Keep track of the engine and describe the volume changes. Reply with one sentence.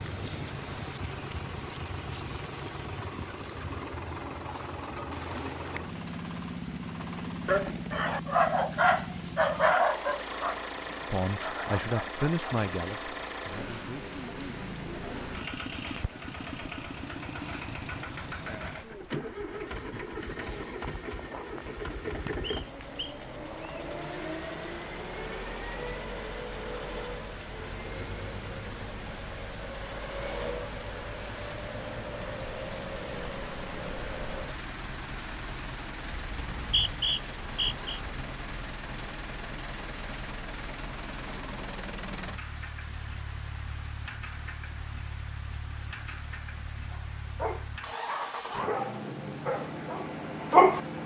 The volume of the engine stays about the same.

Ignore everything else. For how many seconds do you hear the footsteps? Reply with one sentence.
The footsteps can't be heard in this clip.